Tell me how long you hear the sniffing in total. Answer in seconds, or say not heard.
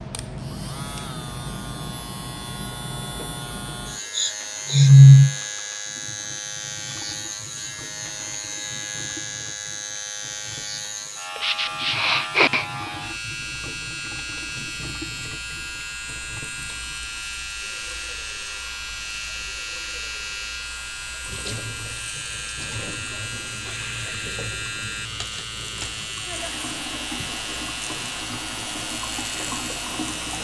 4 s.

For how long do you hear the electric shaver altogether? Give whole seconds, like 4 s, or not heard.
30 s.